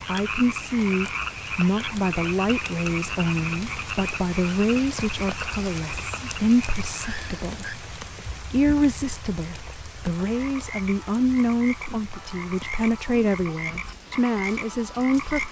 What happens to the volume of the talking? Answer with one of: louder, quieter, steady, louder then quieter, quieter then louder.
steady.